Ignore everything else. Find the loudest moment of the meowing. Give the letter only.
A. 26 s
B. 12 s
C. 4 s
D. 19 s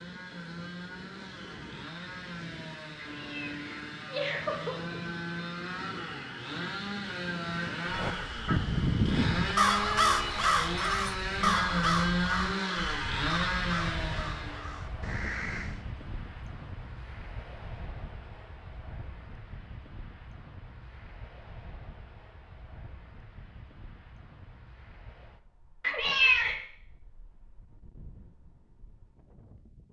A.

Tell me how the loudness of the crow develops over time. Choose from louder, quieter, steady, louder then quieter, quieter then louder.
quieter.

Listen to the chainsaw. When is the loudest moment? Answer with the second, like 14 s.
12 s.